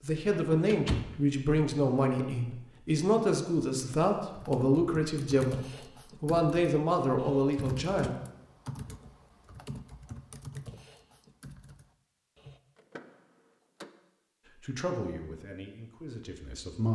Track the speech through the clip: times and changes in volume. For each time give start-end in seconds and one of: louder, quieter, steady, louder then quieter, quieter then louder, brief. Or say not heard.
0.0-8.2 steady
14.6-16.9 brief.